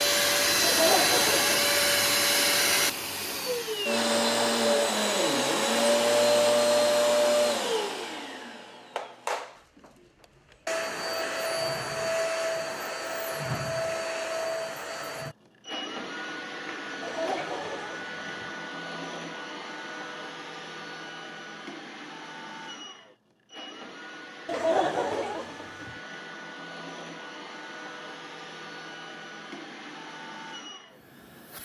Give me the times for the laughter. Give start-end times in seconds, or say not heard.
0.6-2.1, 17.0-18.4, 24.4-25.9.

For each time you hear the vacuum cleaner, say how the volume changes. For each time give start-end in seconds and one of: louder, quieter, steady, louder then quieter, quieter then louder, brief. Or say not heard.
0.0-31.5 quieter.